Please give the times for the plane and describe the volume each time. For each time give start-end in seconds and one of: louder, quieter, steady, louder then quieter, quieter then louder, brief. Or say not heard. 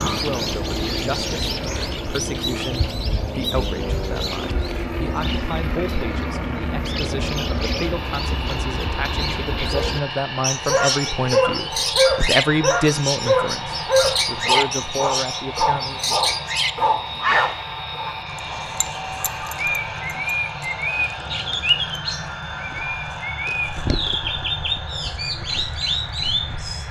0.0-26.8 steady.